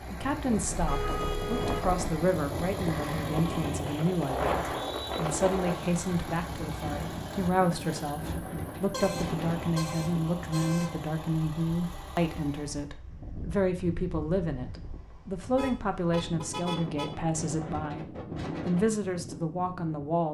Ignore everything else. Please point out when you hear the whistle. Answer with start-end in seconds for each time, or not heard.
4.5-5.2.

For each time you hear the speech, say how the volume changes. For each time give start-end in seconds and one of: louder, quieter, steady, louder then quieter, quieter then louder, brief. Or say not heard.
0.0-20.3 steady.